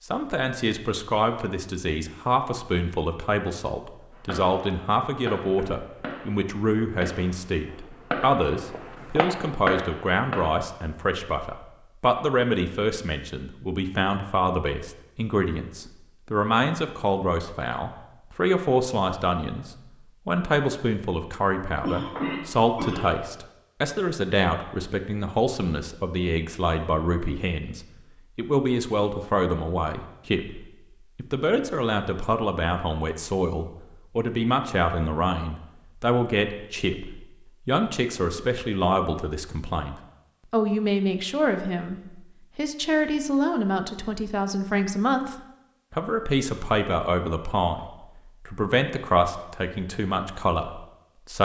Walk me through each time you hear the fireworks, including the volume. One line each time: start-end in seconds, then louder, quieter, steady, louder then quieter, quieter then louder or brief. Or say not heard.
4.1-10.7 louder.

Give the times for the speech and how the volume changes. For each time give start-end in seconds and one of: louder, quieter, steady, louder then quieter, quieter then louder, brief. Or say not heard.
0.0-51.4 steady.